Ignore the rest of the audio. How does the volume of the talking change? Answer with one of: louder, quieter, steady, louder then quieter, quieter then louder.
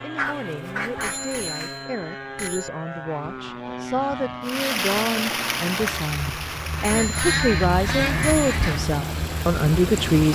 louder.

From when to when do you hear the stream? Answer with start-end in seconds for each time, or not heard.
4.4-10.3.